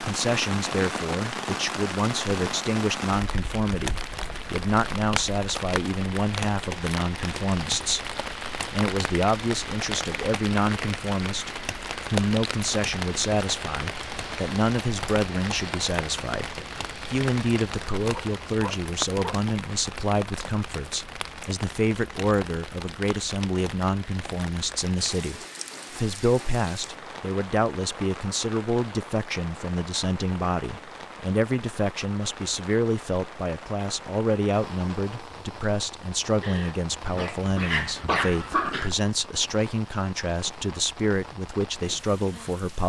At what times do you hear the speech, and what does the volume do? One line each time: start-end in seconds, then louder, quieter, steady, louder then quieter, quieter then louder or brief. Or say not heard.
0.0-42.8 steady.